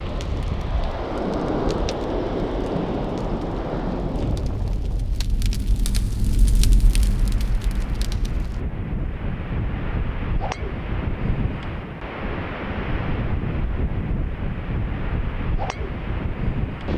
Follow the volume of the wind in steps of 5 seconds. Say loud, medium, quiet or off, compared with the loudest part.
loud, medium, loud, loud.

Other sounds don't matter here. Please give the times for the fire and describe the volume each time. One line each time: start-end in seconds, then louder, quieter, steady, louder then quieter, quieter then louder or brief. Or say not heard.
0.0-8.7 louder.